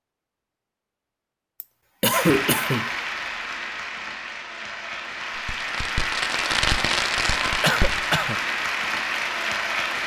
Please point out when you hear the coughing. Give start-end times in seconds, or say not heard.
1.6-2.9, 7.6-8.4.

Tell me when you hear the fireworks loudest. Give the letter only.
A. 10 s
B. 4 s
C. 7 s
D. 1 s
C.